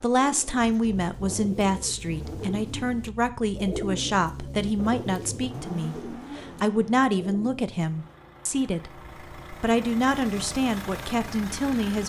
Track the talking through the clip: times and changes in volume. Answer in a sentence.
The talking can be heard from 0.0 to 12.0 s, at a steady volume.